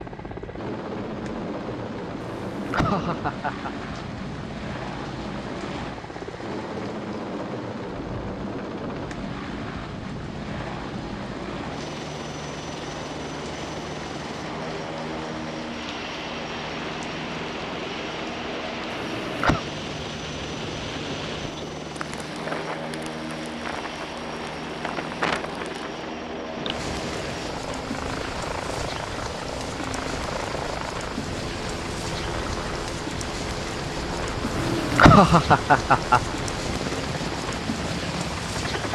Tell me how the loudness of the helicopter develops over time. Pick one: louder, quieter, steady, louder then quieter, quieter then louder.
steady.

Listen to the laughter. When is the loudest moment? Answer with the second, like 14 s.
35 s.